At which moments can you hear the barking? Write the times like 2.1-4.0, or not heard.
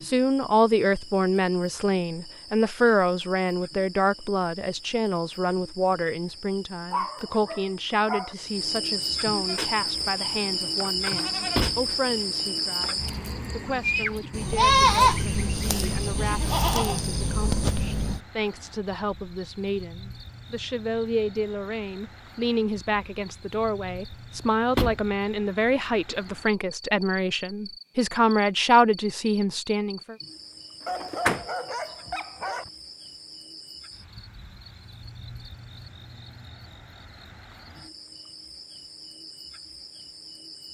6.9-8.3, 30.9-32.7.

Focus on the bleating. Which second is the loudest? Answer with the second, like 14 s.
15 s.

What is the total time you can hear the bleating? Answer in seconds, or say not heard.
9 s.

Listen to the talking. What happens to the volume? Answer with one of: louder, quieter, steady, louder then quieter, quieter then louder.
quieter then louder.